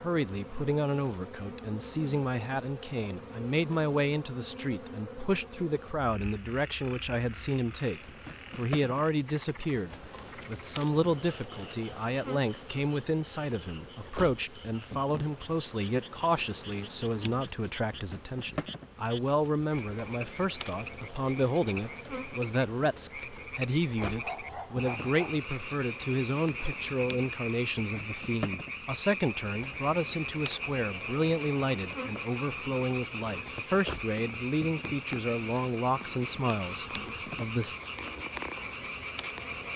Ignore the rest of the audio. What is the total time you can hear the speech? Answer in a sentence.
You can hear the speech for 38 seconds altogether.